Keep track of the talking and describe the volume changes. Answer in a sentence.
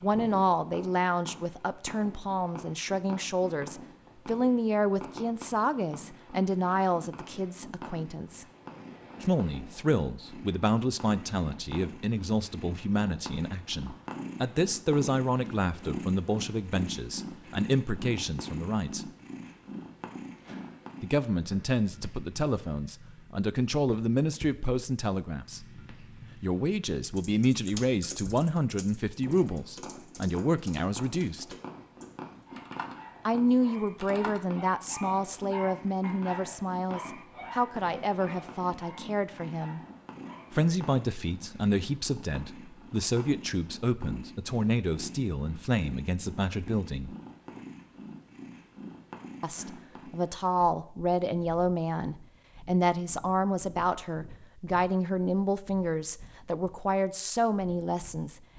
The volume of the talking stays about the same.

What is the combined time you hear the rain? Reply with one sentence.
The rain can't be heard in this clip.